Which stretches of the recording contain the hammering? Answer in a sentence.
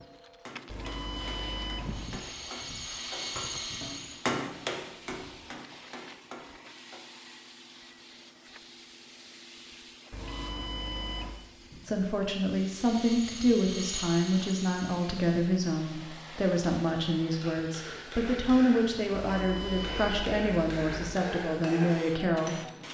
You can hear the hammering from 0.0 to 7.0 s and from 17.4 to 22.8 s.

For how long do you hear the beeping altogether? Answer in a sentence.
The beeping can be heard for 5 seconds in total.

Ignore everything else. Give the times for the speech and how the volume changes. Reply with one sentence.
You can hear the speech from 11.8 to 22.6 s, at a steady volume.